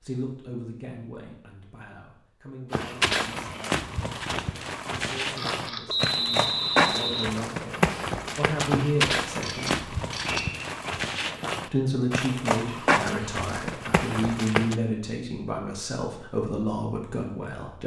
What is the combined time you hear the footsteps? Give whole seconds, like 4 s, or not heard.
12 s.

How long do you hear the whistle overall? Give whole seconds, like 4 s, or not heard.
2 s.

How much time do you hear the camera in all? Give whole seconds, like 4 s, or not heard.
2 s.